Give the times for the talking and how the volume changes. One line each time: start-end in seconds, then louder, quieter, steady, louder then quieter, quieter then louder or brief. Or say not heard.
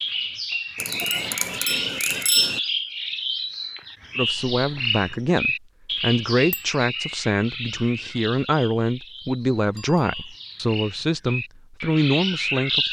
4.2-12.8 steady.